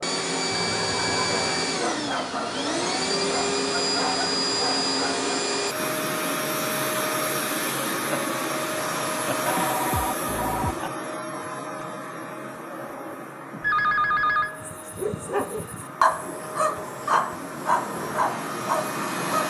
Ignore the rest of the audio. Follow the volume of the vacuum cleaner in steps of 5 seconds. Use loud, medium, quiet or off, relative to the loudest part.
loud, loud, medium, medium.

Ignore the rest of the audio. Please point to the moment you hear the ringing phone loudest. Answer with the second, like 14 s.
14 s.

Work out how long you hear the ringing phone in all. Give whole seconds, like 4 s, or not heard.
3 s.